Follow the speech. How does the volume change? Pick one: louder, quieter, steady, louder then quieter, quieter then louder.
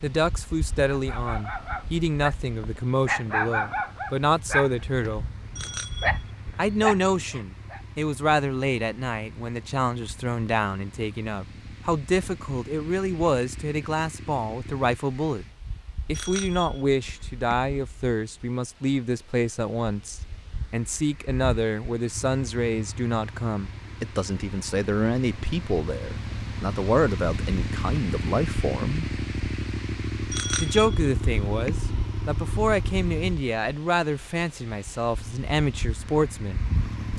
steady.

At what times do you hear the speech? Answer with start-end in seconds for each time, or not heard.
0.0-5.2, 6.5-15.4, 16.1-29.1, 30.6-37.1.